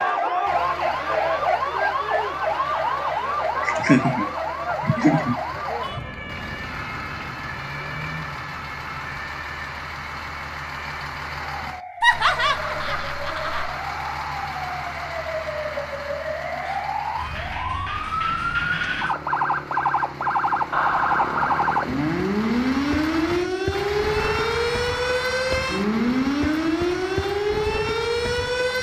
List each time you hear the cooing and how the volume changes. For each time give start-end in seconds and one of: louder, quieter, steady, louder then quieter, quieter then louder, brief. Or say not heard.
not heard.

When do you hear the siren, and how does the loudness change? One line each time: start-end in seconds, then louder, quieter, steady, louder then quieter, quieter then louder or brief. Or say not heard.
0.0-28.7 quieter then louder.